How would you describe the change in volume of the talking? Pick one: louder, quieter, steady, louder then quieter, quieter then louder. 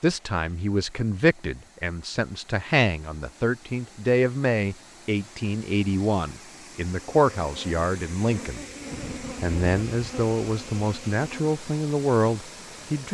steady.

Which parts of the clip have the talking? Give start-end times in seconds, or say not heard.
0.0-8.6, 9.4-13.1.